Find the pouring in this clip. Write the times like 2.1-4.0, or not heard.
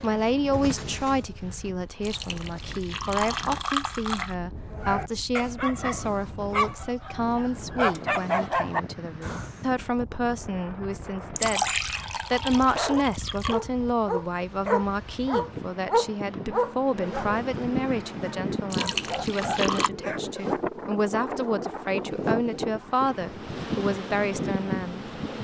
2.0-4.3, 11.3-13.6, 18.7-19.9.